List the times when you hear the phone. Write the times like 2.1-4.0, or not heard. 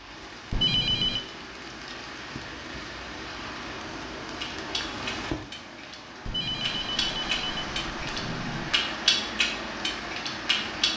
0.5-1.2, 6.2-8.8.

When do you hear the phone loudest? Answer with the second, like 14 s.
1 s.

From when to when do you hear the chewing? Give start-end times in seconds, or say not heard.
4.4-10.9.